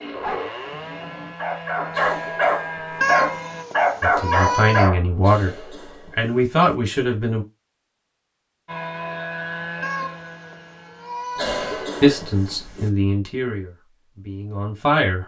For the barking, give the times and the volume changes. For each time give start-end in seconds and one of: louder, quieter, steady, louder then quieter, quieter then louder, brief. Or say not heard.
0.0-5.0 louder.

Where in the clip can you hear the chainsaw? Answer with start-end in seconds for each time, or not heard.
0.0-3.6, 8.7-11.4.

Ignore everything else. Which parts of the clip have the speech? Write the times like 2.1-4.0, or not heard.
4.0-5.5, 6.2-7.5, 12.0-15.2.